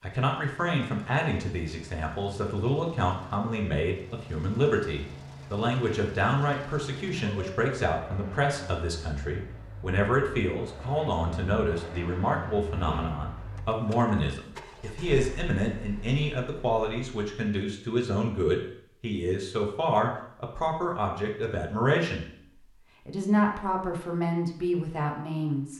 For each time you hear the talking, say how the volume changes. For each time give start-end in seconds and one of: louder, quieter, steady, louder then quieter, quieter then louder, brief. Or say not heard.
0.0-25.7 steady.